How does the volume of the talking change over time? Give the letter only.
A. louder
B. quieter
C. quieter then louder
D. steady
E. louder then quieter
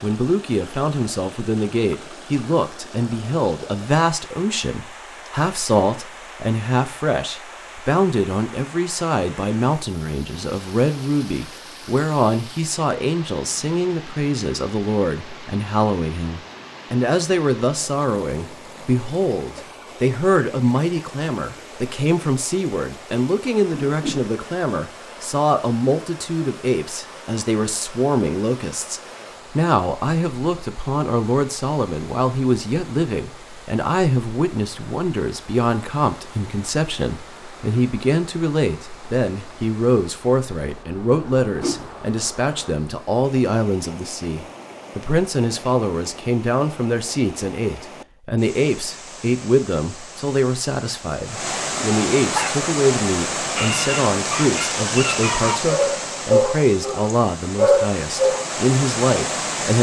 D.